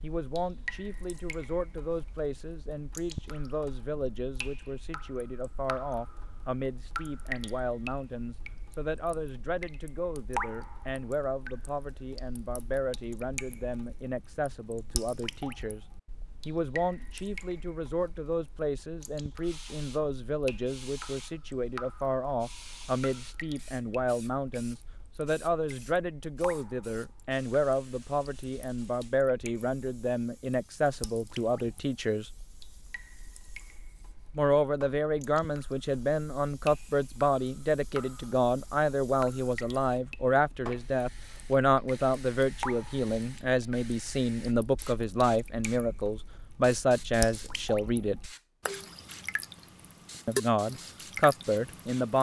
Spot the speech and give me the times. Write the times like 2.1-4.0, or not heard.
0.0-15.8, 16.4-32.3, 34.4-48.2, 50.2-52.1.